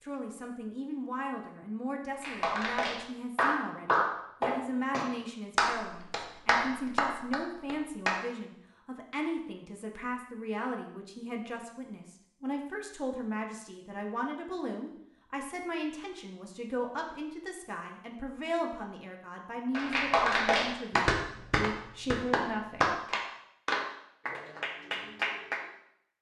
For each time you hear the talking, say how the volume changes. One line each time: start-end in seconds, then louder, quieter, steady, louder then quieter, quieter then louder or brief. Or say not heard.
0.0-23.2 steady.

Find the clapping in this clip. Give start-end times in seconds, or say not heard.
2.2-8.2, 19.7-25.6.